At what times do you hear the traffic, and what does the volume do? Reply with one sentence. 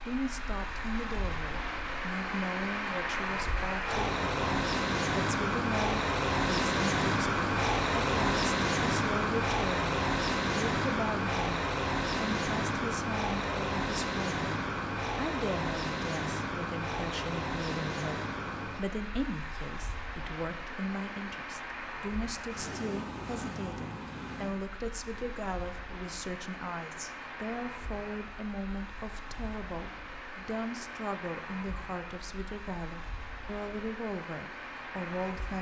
The traffic can be heard from 0.0 to 35.5 s, getting quieter.